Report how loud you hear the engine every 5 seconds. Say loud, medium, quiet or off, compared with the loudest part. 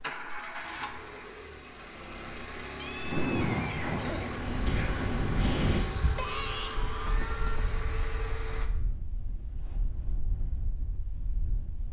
loud, loud, off.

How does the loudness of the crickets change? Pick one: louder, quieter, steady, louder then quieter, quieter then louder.
louder.